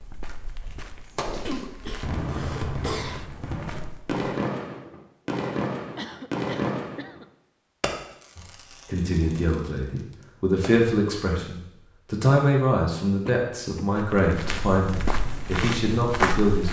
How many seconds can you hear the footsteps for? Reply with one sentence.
You can hear the footsteps for 7 seconds altogether.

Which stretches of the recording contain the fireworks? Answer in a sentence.
The fireworks can be heard from 1.1 to 10.8 s.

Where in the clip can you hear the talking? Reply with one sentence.
The talking can be heard from 8.3 to 16.6 s.